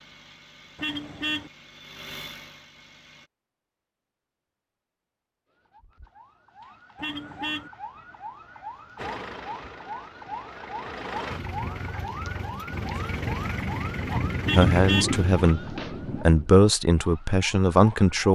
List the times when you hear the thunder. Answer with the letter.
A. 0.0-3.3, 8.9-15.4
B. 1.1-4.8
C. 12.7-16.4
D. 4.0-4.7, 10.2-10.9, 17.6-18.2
C.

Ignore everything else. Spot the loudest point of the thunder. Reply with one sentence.
The volume of the thunder peaks at 15 seconds.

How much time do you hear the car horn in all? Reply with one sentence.
The car horn can be heard for 2 seconds in total.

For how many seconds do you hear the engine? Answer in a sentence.
You can hear the engine for 10 seconds altogether.